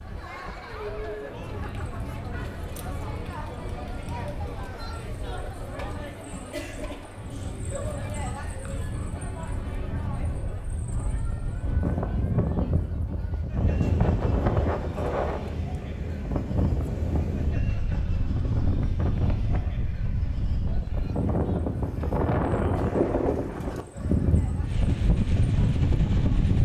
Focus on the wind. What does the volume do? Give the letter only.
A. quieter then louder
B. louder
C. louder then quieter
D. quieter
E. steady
B.